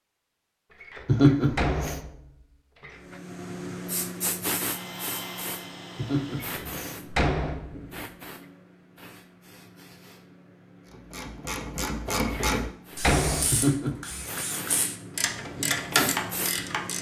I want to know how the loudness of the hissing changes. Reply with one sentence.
The volume of the hissing goes down, then up.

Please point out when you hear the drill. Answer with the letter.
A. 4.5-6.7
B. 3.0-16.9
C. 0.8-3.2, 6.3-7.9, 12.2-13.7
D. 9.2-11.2
A.